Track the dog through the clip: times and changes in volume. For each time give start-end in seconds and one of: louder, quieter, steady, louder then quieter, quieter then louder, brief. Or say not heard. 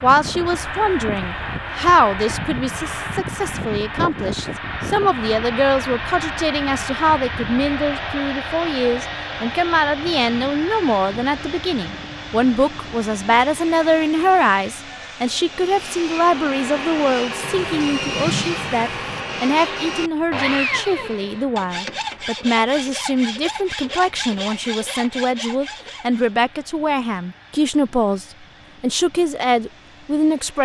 not heard.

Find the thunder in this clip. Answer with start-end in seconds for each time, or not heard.
17.4-19.2.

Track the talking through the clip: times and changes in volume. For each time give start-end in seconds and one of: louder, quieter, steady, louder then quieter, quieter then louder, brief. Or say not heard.
0.0-30.5 steady.